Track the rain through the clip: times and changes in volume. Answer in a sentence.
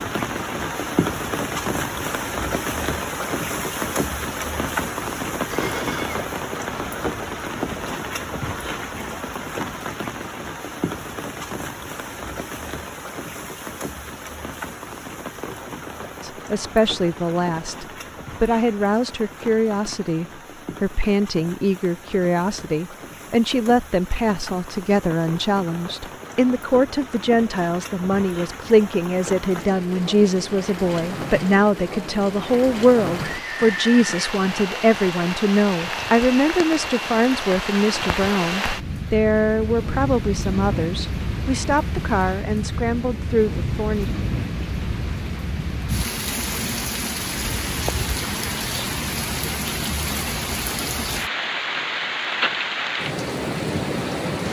The rain can be heard from 0.0 to 54.4 s, getting quieter then louder.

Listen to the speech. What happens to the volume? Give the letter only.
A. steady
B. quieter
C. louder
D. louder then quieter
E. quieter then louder
A.